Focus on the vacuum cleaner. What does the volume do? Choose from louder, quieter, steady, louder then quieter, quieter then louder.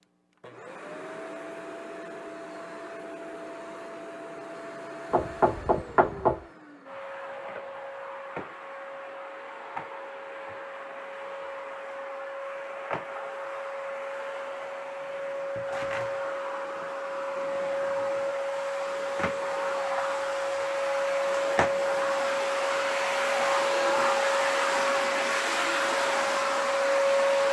louder.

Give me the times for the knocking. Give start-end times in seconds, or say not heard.
5.1-6.5.